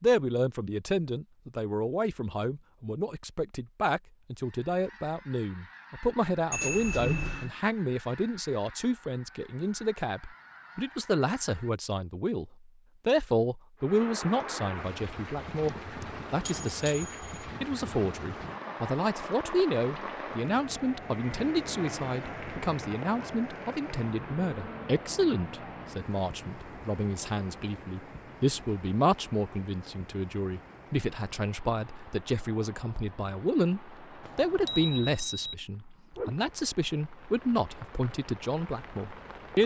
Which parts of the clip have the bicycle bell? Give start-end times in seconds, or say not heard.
6.5-7.5, 15.7-17.4, 34.2-35.5.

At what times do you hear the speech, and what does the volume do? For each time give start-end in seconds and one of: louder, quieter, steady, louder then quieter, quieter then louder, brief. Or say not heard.
0.0-39.6 steady.